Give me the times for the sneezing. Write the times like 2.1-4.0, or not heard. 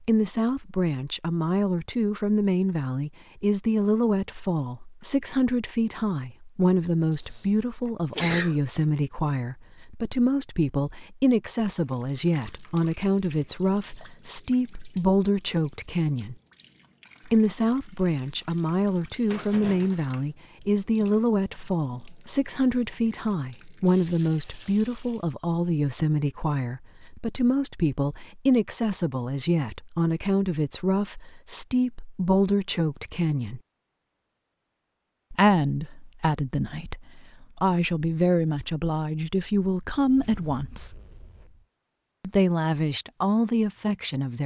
7.2-9.0.